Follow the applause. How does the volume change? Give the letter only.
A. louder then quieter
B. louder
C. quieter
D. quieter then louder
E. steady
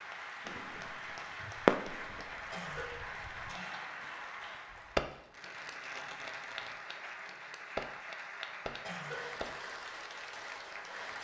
E.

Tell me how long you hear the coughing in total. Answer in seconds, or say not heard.
2 s.